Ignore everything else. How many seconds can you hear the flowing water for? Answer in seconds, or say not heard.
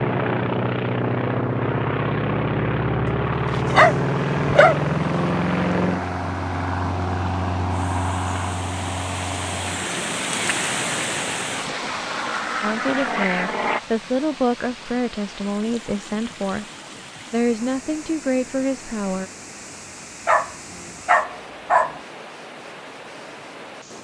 20 s.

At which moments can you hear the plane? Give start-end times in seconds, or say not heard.
0.0-13.8.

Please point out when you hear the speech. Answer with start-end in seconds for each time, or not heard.
12.6-16.6, 17.3-19.3.